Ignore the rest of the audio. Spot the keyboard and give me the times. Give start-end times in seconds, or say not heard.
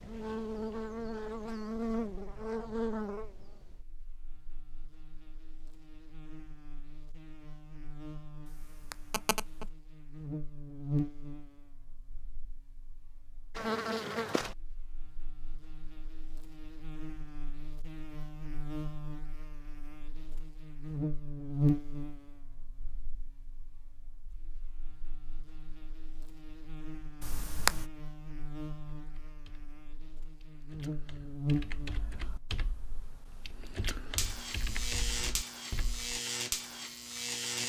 28.9-36.2.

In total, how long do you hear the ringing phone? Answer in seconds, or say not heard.
2 s.